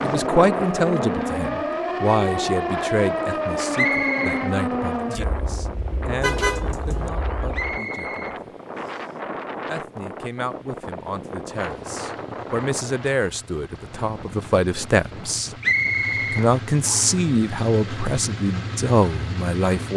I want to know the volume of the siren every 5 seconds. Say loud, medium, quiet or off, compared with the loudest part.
loud, medium, off, off.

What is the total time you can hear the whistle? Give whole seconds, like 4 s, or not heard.
4 s.